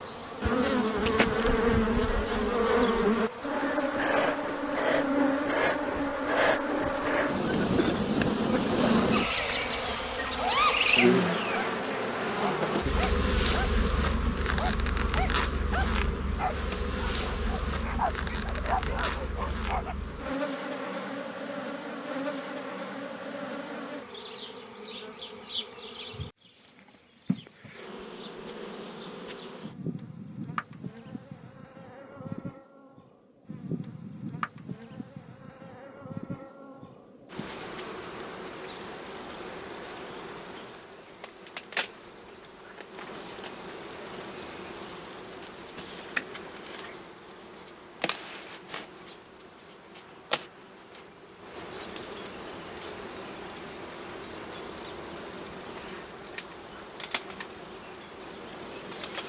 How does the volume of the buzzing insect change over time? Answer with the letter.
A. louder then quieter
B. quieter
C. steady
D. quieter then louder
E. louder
B.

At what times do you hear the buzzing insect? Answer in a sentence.
The buzzing insect can be heard from 0.0 to 59.2 s.